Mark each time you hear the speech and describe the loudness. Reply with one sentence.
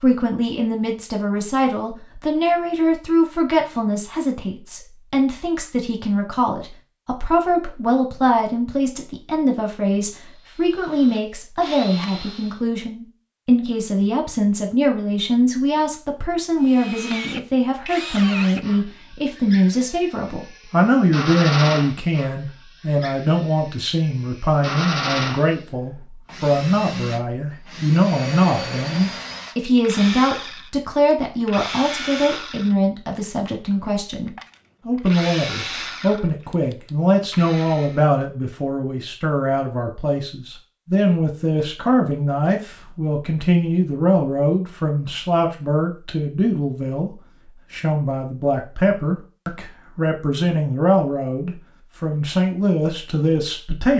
You can hear the speech from 0.0 to 53.9 s, at a steady volume.